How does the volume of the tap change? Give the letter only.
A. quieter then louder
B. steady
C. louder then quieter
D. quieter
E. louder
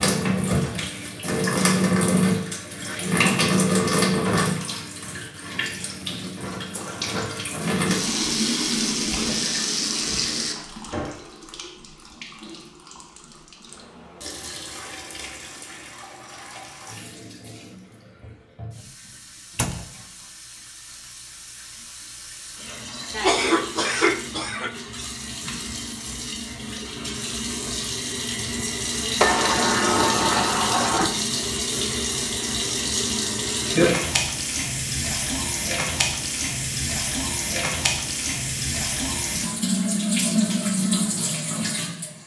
A.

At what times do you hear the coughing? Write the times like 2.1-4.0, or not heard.
23.1-24.7.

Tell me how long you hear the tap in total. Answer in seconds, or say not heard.
42 s.